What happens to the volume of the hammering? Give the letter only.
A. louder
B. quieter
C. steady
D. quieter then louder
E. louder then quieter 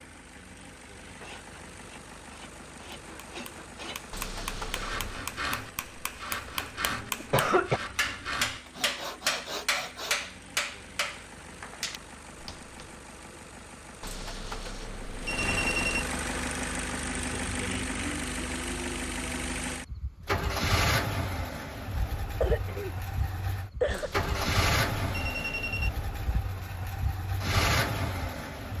E.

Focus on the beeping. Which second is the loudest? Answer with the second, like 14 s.
16 s.